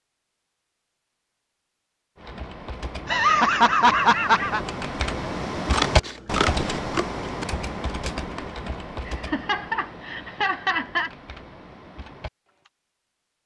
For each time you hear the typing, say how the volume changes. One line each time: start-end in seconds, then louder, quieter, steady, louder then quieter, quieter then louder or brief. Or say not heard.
2.1-12.7 louder then quieter.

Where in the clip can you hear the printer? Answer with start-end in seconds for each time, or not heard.
not heard.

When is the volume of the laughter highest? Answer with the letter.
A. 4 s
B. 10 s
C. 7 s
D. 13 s
A.